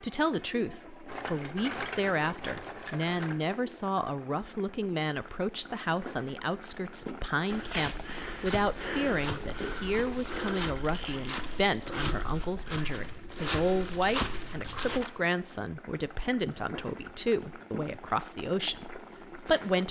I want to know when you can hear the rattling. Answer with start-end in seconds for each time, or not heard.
1.1-3.5, 10.8-11.4, 14.2-15.2.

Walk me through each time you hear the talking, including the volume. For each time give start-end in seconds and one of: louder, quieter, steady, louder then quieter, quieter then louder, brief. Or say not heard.
0.0-19.8 steady.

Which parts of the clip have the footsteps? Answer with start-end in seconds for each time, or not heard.
7.5-15.0.